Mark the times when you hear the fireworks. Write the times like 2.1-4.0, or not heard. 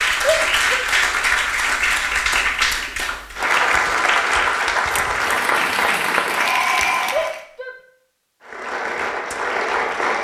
not heard.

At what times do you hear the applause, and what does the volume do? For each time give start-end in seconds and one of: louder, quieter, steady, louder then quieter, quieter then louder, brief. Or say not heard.
0.0-7.4 steady
8.4-10.2 brief.